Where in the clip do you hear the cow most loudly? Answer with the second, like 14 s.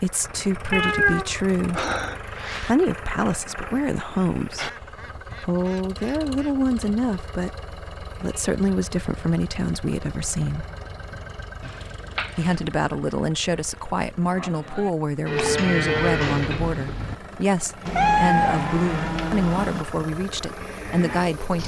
16 s.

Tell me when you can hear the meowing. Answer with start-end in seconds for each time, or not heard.
0.7-2.8, 11.6-12.6, 17.9-19.9.